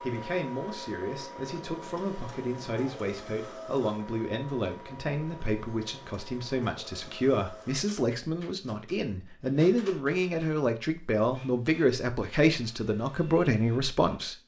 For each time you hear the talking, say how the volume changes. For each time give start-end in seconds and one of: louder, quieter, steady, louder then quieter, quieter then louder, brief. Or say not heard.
0.0-14.3 louder.